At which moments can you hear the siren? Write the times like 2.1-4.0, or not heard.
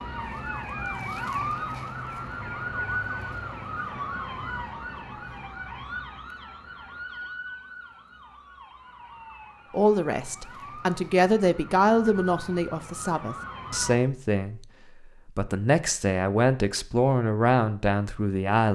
0.0-14.0.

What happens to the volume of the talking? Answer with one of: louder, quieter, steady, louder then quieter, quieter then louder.
steady.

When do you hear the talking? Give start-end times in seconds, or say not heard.
9.7-14.7, 15.2-18.6.